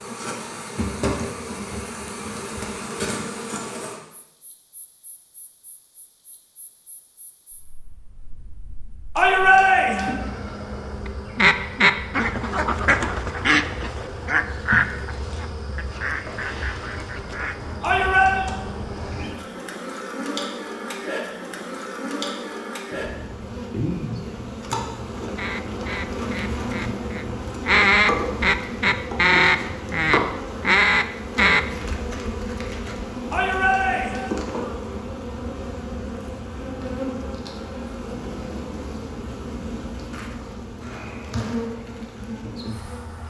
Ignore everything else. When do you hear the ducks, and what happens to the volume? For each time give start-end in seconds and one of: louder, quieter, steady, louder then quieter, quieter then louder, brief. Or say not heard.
11.1-17.8 quieter
25.4-31.6 louder.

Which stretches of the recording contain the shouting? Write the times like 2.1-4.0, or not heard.
9.2-10.2, 17.8-18.4, 33.3-34.3.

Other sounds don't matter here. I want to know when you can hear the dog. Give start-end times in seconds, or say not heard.
not heard.